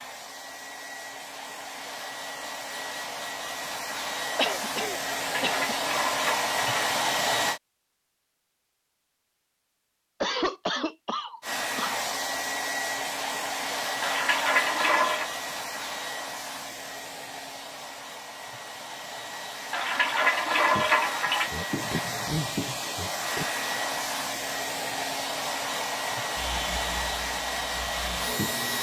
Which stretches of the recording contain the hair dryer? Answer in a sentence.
The hair dryer can be heard from 0.0 to 7.6 s and from 11.4 to 28.7 s.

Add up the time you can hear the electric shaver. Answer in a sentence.
The electric shaver can be heard for 2 seconds in total.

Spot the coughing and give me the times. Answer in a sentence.
You can hear the coughing from 4.3 to 5.8 s, from 10.2 to 12.1 s and from 21.4 to 23.4 s.